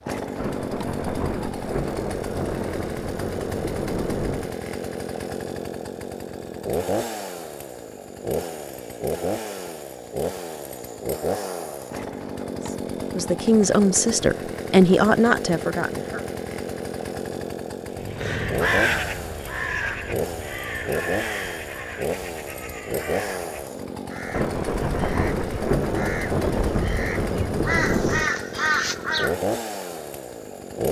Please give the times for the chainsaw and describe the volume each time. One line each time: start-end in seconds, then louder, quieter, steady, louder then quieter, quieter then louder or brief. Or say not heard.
0.0-30.8 steady.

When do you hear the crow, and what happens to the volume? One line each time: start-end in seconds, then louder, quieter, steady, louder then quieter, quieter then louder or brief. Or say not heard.
17.9-29.4 quieter then louder.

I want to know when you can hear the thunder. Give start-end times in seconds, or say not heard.
0.3-4.5, 24.3-28.3.